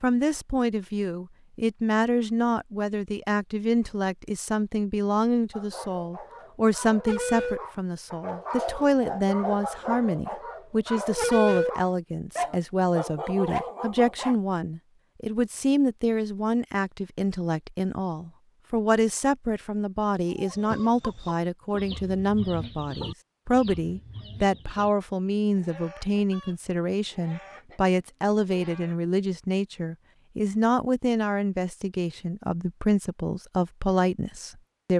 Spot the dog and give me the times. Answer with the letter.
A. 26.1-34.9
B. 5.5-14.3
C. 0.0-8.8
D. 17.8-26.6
B.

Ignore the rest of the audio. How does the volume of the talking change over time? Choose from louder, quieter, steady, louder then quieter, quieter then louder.
steady.